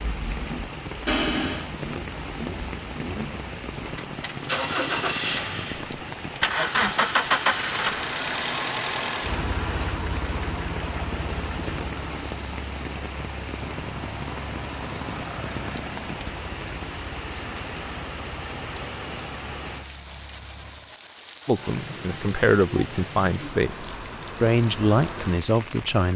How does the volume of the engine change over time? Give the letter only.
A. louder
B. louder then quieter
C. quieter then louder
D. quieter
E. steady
B.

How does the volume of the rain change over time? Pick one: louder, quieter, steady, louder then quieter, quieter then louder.
steady.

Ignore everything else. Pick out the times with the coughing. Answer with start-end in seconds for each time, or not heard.
1.1-1.8.